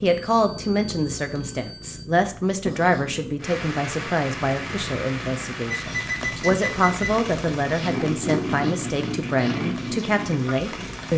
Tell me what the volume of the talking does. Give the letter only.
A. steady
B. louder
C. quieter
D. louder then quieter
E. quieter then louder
A.